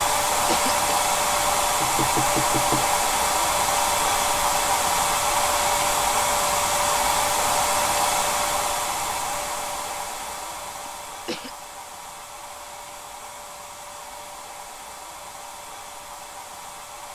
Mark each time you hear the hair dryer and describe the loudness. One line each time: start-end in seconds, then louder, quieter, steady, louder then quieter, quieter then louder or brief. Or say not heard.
0.0-17.1 quieter.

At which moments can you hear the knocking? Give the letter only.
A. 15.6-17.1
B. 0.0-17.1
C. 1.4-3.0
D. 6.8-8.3
C.